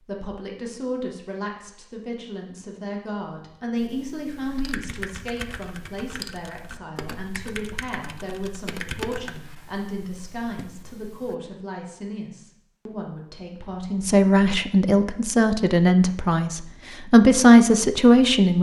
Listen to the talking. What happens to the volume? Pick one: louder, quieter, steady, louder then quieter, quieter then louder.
louder.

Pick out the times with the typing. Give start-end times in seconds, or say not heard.
3.8-11.3.